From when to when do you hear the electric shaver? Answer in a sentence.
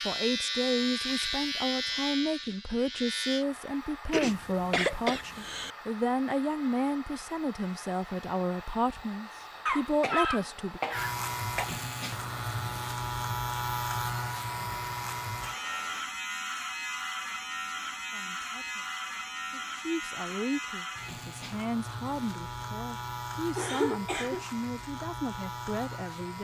You can hear the electric shaver from 0.0 to 3.5 s and from 10.9 to 26.4 s.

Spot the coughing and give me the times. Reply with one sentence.
You can hear the coughing from 4.1 to 5.7 s, from 9.7 to 11.7 s and from 23.6 to 24.4 s.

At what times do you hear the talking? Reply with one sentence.
The talking can be heard from 0.1 to 10.8 s and from 18.1 to 26.4 s.